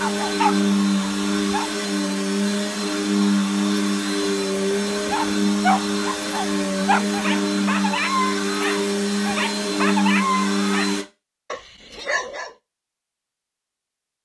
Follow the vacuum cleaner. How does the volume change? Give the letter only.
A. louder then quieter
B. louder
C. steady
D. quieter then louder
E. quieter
C.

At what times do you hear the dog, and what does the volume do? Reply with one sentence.
You can hear the dog briefly from 0.0 to 1.7 s; and from 5.1 to 12.5 s, getting quieter.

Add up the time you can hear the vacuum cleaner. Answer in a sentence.
The vacuum cleaner can be heard for 11 seconds in total.